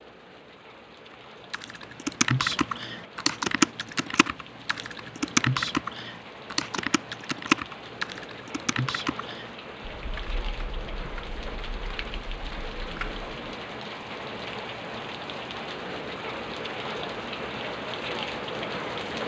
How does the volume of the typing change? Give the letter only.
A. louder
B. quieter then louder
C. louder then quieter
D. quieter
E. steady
D.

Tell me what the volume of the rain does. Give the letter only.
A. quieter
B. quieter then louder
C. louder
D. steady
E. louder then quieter
C.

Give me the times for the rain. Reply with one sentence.
You can hear the rain from 0.0 to 19.2 s.